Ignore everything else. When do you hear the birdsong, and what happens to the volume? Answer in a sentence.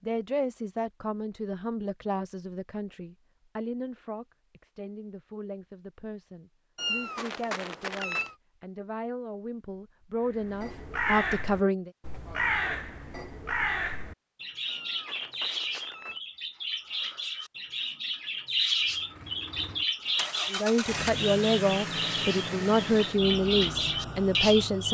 The birdsong can be heard from 10.3 to 24.8 s, at a steady volume.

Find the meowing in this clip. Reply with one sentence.
You can hear the meowing from 6.8 to 8.3 s and from 14.7 to 16.2 s.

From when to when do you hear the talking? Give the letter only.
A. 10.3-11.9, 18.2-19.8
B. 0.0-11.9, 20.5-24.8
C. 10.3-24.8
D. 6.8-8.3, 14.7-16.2
B.